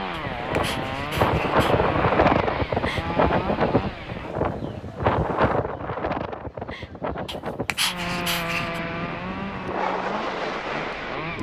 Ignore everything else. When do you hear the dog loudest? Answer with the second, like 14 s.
8 s.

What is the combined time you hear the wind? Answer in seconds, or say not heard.
11 s.